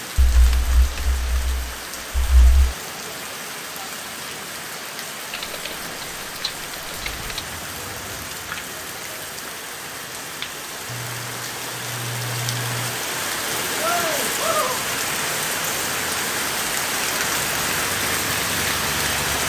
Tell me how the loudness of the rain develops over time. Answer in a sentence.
The loudness of the rain goes up.